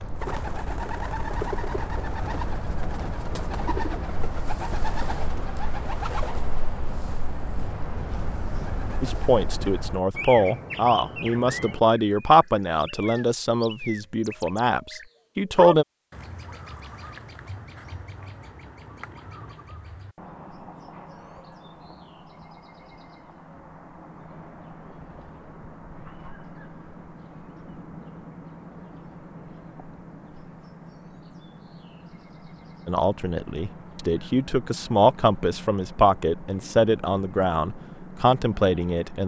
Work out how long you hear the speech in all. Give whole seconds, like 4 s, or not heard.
13 s.